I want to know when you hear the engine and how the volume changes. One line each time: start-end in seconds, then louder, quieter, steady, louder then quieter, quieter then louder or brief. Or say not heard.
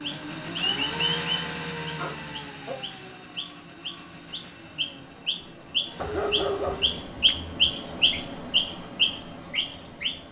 0.0-7.0 quieter.